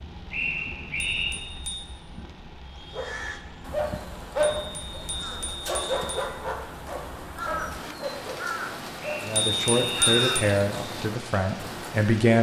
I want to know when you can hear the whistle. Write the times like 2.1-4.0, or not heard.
0.3-1.4, 9.0-10.7.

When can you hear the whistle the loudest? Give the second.
1 s.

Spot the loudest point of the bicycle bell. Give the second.
10 s.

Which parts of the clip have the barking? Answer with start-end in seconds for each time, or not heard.
2.9-9.3.